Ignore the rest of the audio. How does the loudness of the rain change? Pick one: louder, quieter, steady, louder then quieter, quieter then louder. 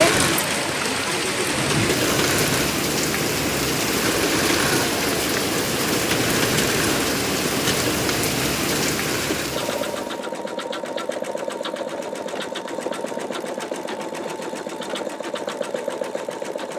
steady.